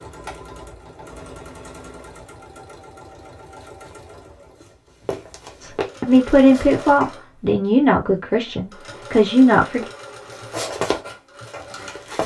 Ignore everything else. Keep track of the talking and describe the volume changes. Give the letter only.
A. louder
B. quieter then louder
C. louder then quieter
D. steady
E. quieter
B.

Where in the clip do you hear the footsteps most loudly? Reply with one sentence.
The loudest moment of the footsteps is at 11 seconds.